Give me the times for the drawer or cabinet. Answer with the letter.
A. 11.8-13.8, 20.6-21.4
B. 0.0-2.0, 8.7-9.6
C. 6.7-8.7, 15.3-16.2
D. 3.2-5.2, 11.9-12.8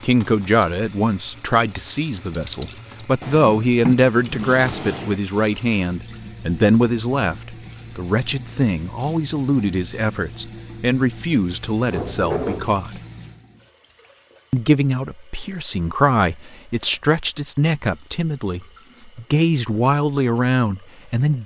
D.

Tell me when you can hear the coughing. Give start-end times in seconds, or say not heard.
not heard.